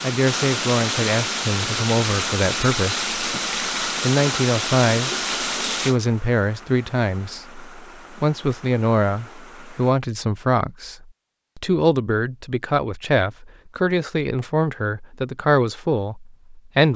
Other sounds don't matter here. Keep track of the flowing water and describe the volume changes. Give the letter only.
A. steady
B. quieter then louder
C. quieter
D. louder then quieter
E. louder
C.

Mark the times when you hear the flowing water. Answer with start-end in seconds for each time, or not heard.
0.0-9.9.